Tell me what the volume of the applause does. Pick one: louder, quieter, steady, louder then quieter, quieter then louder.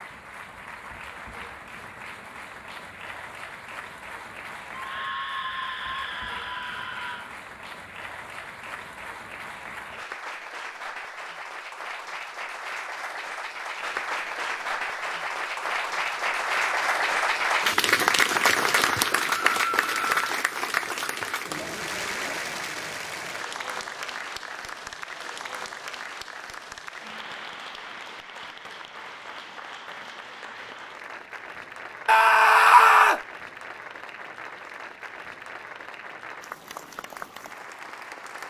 louder then quieter.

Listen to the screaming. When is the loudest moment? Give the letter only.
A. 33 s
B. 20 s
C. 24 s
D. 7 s
A.